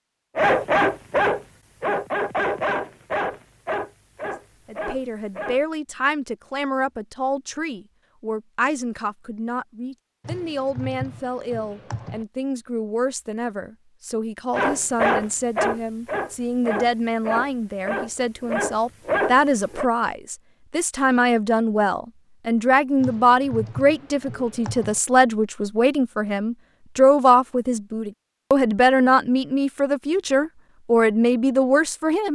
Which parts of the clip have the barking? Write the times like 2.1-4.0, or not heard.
0.3-5.6, 14.5-19.9.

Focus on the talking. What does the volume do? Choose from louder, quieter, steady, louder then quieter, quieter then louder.
louder.